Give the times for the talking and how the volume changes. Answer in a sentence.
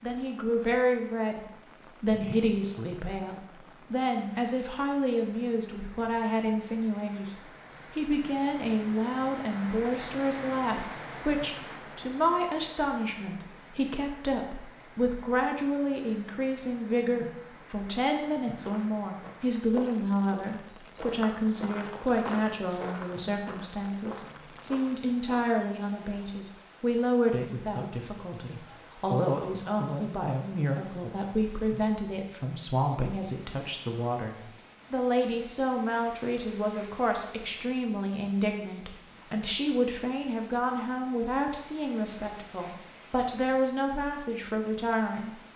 The talking can be heard from 0.0 to 45.4 s, at a steady volume.